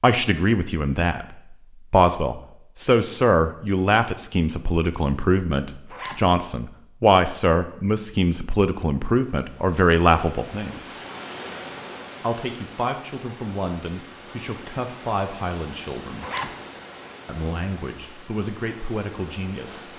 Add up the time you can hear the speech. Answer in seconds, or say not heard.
18 s.